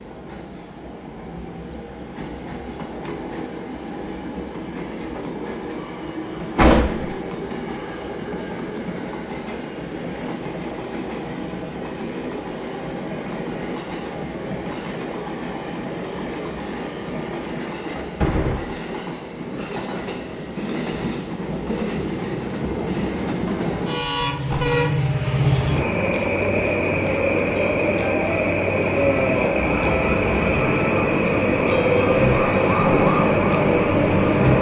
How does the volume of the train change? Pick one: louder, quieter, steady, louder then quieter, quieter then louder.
louder.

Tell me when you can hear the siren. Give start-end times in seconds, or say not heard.
29.6-34.5.